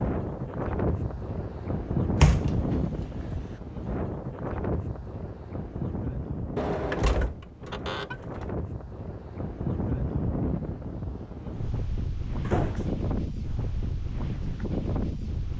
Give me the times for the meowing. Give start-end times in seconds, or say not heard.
not heard.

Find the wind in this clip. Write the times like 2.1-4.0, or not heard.
0.0-15.5.